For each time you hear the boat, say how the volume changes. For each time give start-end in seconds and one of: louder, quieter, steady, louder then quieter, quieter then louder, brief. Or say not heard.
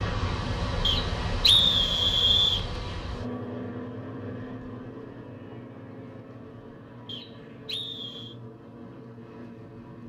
0.0-10.0 quieter.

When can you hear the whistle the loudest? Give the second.
2 s.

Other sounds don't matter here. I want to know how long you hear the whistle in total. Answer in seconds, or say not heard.
3 s.